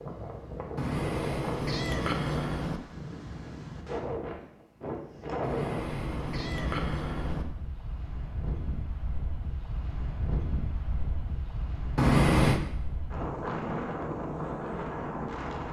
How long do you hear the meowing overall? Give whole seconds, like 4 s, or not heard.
5 s.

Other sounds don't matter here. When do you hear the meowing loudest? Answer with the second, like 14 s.
12 s.